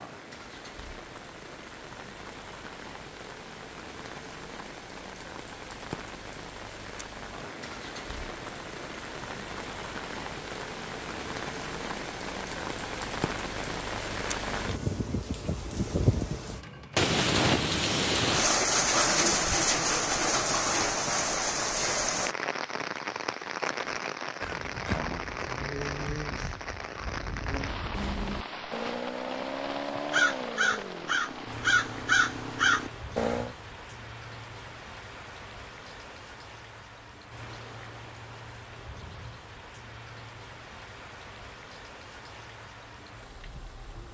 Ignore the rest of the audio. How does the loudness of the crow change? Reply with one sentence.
The loudness of the crow goes up.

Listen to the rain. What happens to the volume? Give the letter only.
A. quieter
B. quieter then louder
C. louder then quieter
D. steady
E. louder
C.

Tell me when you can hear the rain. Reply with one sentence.
You can hear the rain from 0.0 to 44.0 s.